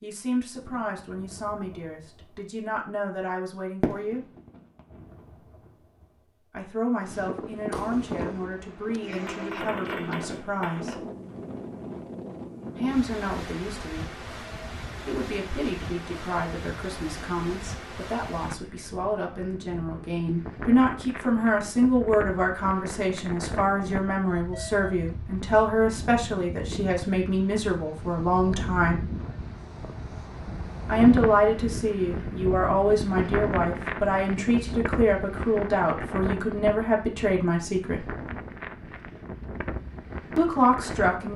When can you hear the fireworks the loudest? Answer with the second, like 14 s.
4 s.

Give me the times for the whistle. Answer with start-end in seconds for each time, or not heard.
not heard.